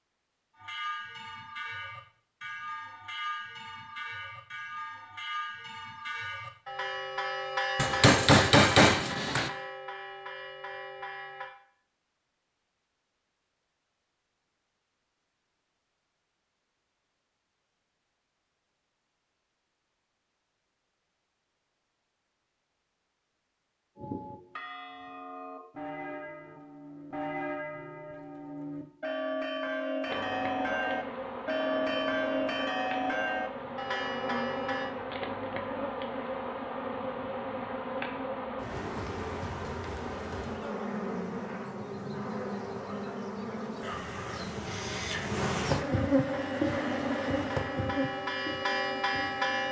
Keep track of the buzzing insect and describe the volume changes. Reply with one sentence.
The volume of the buzzing insect goes up.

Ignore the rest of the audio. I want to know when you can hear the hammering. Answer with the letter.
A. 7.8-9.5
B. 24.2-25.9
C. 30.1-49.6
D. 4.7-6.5
A.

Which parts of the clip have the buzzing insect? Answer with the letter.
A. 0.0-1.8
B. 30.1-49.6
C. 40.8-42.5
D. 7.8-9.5
B.